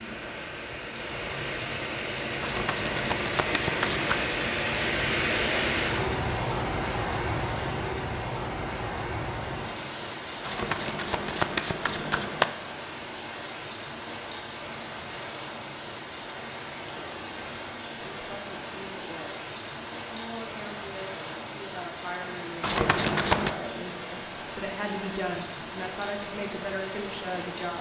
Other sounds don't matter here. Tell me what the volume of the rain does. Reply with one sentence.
The volume of the rain goes down.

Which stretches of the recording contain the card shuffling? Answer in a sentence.
The card shuffling can be heard from 2.4 to 4.2 s, from 10.4 to 12.4 s and from 22.6 to 23.6 s.